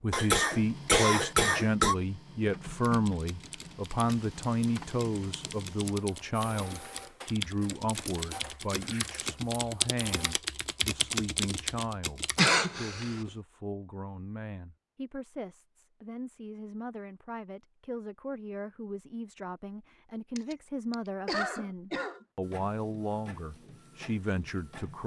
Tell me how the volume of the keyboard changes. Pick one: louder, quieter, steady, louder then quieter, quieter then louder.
louder.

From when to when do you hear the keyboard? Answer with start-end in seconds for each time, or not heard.
2.8-12.5.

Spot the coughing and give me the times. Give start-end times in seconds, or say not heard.
0.1-1.9, 12.3-13.2, 20.4-22.2.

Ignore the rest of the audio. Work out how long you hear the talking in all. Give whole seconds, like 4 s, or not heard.
25 s.